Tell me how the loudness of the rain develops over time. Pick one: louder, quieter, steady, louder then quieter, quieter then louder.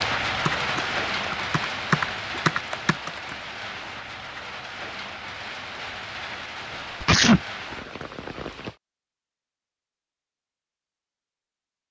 quieter.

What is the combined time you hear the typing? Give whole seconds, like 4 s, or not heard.
3 s.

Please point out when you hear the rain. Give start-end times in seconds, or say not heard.
0.0-8.8.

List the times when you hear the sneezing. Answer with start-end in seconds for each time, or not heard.
7.0-7.4.